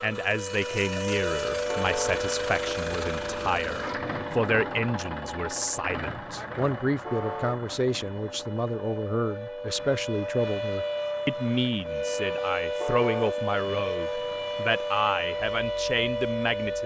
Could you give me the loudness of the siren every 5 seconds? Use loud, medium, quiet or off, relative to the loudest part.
loud, medium, loud, loud.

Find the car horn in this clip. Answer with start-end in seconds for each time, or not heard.
1.6-2.3, 7.0-7.7, 12.8-13.4.